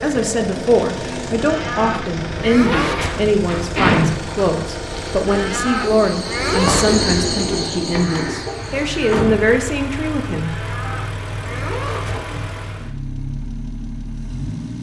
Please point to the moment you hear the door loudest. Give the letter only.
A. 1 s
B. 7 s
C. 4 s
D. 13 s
C.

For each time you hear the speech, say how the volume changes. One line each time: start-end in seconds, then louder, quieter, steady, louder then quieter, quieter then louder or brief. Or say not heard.
0.0-10.7 steady.